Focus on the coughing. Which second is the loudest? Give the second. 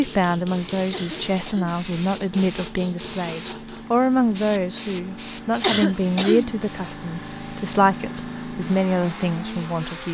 6 s.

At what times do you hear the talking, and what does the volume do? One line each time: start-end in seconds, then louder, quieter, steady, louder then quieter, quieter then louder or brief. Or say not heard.
0.0-10.0 steady.